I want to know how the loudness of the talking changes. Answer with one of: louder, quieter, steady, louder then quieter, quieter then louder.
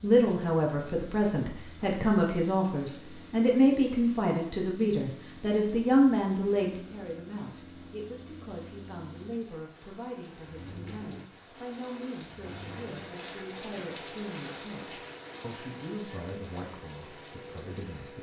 quieter.